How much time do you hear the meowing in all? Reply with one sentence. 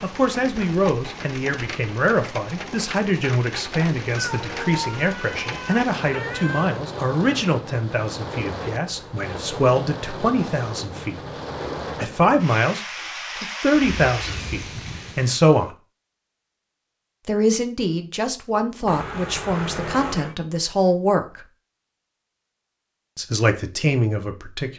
You can hear the meowing for 5 seconds altogether.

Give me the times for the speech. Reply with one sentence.
You can hear the speech from 0.0 to 11.2 s, from 12.0 to 15.8 s, from 17.2 to 21.4 s and from 23.1 to 24.7 s.